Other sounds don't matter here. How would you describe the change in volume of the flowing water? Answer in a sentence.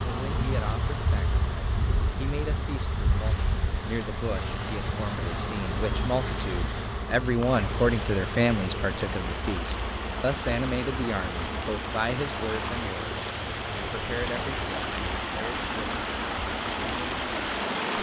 The loudness of the flowing water goes up.